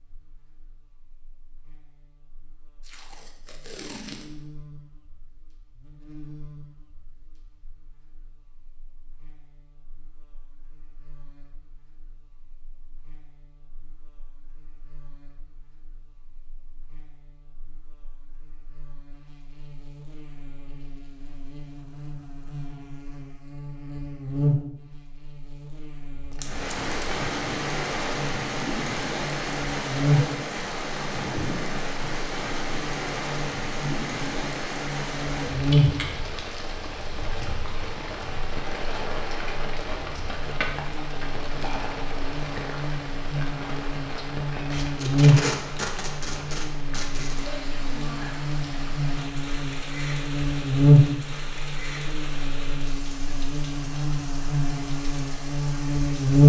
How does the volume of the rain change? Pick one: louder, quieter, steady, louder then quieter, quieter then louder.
quieter.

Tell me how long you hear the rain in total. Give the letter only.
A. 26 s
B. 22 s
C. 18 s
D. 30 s
D.